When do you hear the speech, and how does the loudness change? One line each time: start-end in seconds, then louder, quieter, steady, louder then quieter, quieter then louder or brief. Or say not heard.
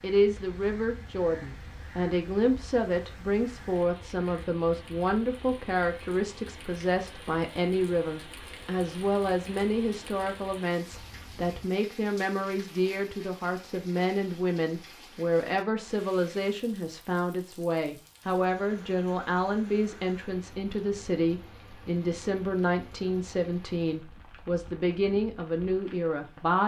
0.0-26.6 steady.